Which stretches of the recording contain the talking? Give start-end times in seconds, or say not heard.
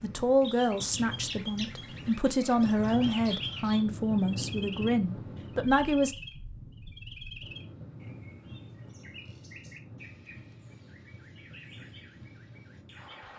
0.0-6.2.